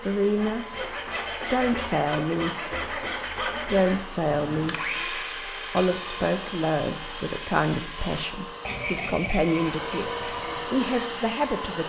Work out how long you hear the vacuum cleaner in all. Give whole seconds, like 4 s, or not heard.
12 s.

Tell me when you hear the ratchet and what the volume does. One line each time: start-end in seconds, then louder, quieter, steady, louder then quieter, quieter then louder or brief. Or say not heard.
not heard.